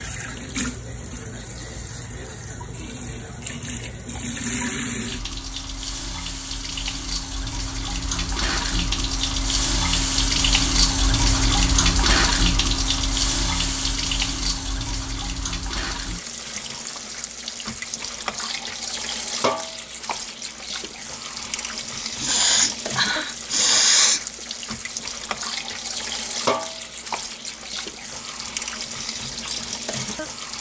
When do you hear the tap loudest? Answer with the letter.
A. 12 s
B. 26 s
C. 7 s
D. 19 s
A.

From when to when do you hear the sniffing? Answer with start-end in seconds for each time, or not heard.
22.1-24.2.